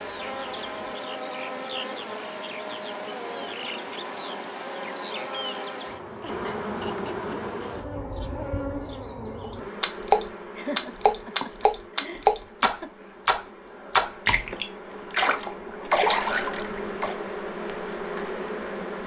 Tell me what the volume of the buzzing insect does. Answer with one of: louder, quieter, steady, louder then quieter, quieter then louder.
quieter then louder.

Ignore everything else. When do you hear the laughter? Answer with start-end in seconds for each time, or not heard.
6.2-7.5, 10.6-12.9.